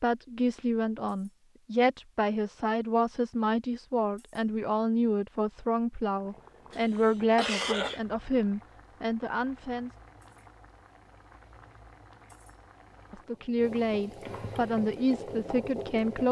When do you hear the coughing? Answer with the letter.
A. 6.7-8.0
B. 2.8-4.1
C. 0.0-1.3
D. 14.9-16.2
A.